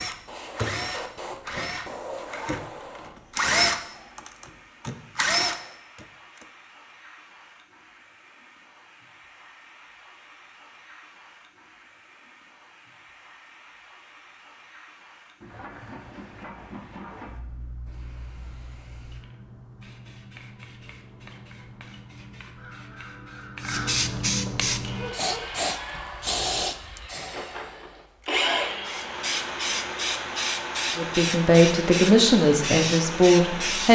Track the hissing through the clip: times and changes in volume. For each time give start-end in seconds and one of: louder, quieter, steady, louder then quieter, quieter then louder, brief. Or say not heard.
0.0-33.9 quieter then louder.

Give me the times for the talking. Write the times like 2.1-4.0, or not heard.
30.9-33.9.